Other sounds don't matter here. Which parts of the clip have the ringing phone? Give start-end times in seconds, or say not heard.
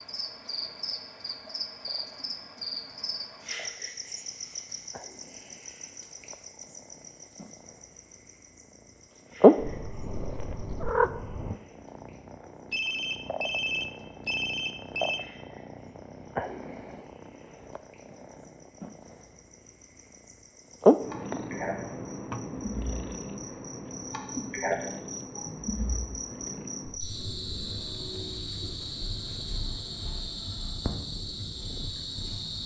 12.7-15.2.